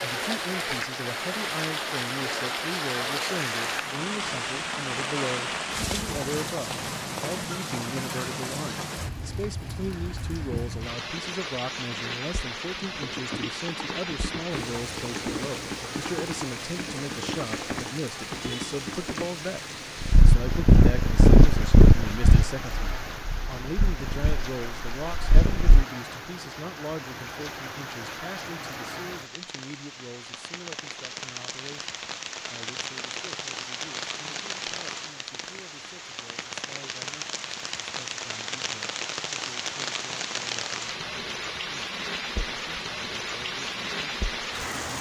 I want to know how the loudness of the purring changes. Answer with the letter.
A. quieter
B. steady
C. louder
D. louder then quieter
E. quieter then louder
E.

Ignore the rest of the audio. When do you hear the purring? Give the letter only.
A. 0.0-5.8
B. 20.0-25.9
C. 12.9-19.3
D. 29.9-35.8
B.